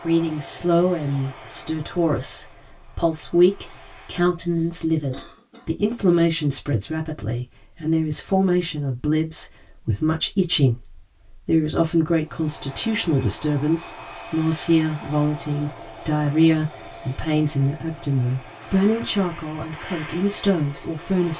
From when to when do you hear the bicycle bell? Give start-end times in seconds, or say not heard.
not heard.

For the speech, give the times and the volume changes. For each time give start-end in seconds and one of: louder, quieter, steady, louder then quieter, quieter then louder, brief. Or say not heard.
0.0-21.3 steady.